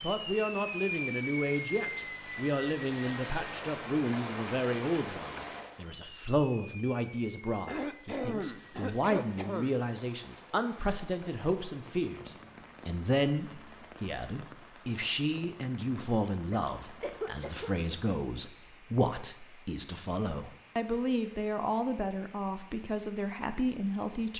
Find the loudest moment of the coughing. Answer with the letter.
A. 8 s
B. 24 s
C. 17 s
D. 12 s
A.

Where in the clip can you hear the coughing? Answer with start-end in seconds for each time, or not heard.
7.7-9.8, 16.5-17.8.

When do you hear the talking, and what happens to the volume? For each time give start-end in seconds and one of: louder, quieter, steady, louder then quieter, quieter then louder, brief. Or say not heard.
0.0-24.3 steady.